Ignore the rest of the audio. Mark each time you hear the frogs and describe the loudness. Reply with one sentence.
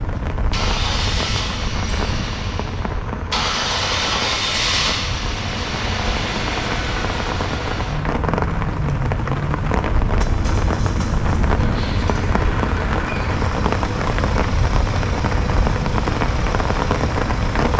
You can't hear the frogs here.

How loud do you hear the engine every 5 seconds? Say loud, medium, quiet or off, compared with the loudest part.
loud, loud, medium, medium.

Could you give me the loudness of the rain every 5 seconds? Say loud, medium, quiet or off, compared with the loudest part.
medium, loud, loud, loud.